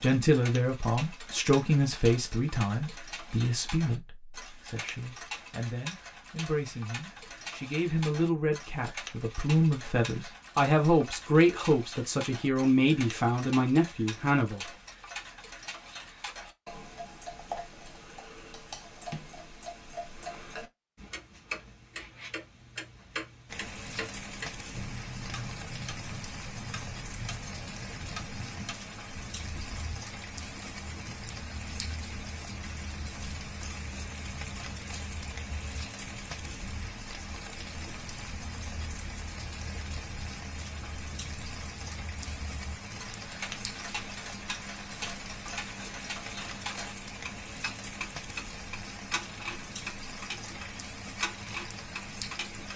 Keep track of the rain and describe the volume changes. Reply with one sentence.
The loudness of the rain stays about the same.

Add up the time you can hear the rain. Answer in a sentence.
You can hear the rain for 29 seconds altogether.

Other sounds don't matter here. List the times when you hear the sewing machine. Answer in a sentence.
You can't hear the sewing machine here.